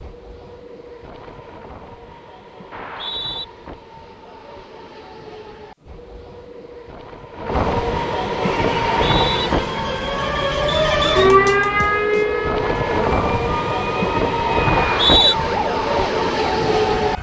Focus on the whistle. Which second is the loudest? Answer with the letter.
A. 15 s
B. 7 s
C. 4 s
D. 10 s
A.